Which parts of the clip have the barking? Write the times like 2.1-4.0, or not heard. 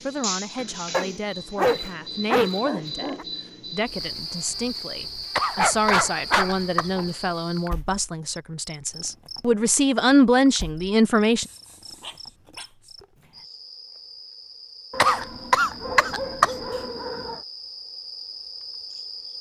0.9-3.2, 5.5-7.1, 11.3-12.9, 14.9-17.4.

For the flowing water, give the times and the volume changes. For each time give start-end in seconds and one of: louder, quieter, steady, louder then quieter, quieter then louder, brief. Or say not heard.
not heard.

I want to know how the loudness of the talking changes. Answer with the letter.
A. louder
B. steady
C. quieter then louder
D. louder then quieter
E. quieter
A.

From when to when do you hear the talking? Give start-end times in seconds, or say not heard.
0.0-11.4.